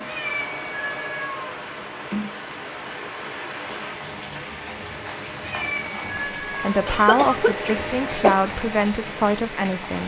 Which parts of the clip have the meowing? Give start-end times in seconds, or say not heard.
0.1-1.6, 5.4-6.7.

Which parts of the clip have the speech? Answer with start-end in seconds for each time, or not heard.
6.6-10.0.